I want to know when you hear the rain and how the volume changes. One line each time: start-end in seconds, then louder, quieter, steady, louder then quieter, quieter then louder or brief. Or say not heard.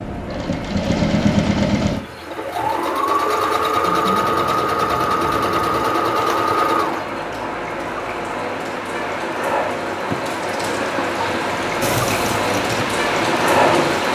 0.0-14.1 louder.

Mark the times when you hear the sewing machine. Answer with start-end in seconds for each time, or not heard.
0.0-7.2, 11.8-14.1.